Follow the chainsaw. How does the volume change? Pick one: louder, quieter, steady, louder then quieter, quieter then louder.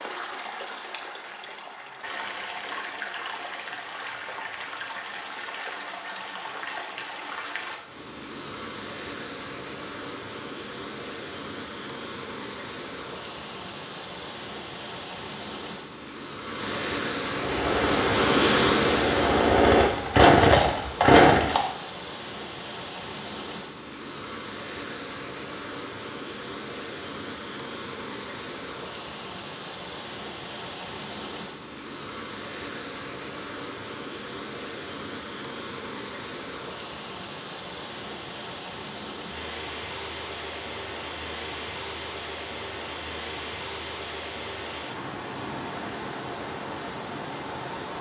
louder.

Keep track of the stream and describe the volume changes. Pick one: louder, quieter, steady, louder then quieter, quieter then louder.
louder then quieter.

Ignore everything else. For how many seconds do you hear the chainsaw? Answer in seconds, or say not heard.
4 s.